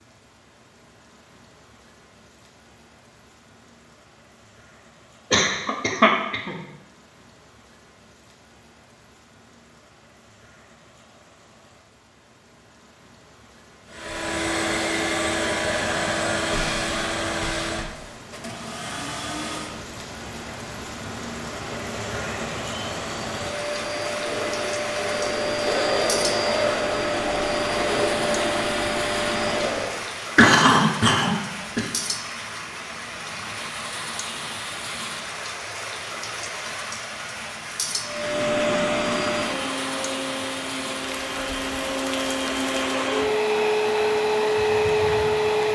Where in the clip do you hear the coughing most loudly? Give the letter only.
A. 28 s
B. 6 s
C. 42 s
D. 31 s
D.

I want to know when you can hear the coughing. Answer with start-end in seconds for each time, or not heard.
5.3-6.5, 30.4-31.9.